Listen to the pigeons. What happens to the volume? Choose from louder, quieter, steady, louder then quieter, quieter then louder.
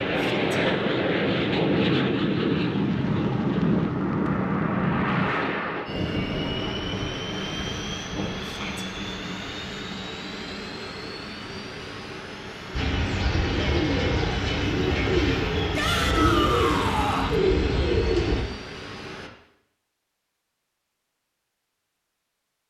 steady.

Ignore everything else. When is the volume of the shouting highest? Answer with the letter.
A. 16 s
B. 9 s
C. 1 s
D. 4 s
A.